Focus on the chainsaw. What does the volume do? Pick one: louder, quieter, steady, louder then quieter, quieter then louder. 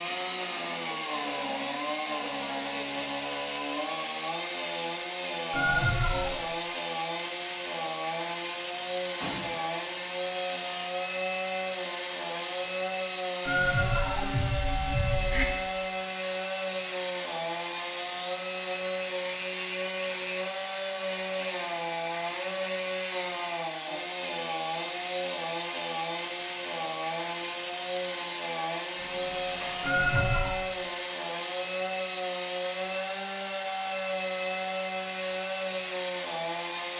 steady.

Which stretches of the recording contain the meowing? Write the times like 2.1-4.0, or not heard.
5.5-6.3, 13.4-15.4, 29.8-30.6.